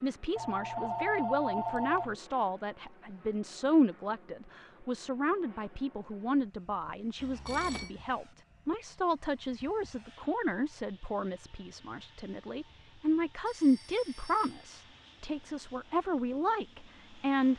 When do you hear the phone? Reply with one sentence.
The phone can be heard from 0.3 to 2.1 s, from 7.2 to 7.9 s and from 13.4 to 14.7 s.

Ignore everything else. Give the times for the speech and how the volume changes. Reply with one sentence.
You can hear the speech from 0.0 to 17.5 s, at a steady volume.